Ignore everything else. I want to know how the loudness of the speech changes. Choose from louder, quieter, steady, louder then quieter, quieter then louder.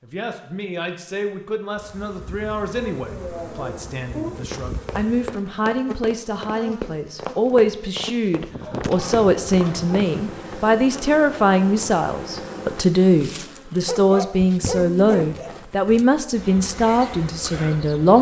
louder.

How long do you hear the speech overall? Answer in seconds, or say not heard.
18 s.